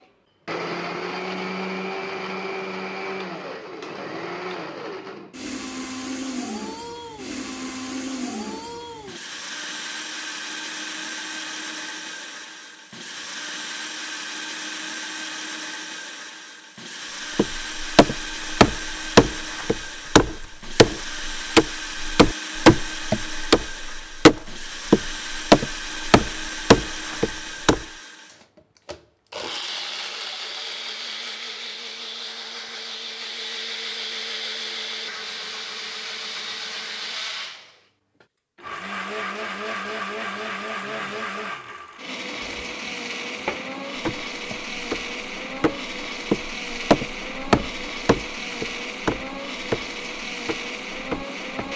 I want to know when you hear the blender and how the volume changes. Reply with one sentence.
You can hear the blender from 0.0 to 51.7 s, at a steady volume.